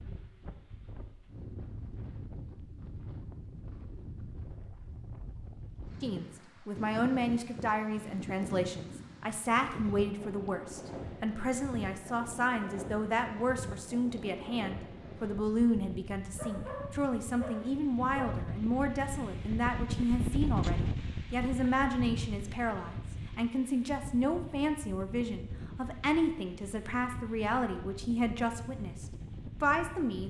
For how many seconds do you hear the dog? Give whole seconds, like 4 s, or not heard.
2 s.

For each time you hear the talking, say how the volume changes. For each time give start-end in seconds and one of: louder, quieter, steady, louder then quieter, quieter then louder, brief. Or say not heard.
6.0-30.2 steady.